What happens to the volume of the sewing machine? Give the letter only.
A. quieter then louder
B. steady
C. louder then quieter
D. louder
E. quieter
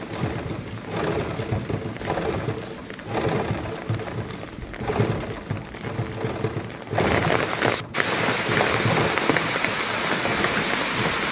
B.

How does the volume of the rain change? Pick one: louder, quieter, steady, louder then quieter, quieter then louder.
louder.